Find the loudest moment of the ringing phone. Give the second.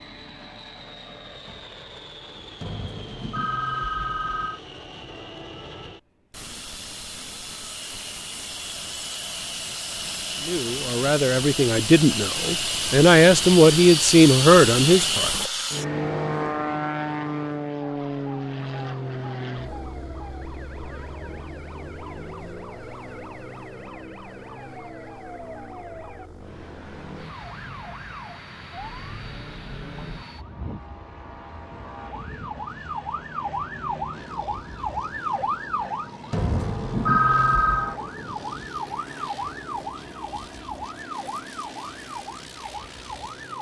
37 s.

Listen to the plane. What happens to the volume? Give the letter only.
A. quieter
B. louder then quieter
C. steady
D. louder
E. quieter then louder
B.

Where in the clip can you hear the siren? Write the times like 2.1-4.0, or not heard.
17.9-43.5.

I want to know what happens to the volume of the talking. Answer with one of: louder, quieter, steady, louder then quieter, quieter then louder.
louder.